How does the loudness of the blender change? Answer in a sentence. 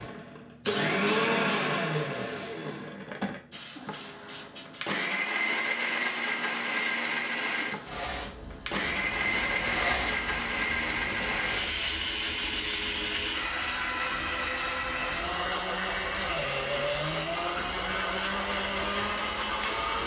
The volume of the blender stays about the same.